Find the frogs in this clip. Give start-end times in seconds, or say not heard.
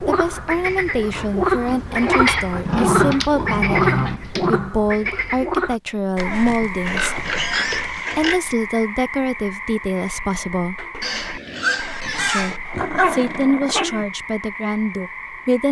0.0-15.6.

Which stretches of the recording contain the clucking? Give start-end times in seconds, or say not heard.
not heard.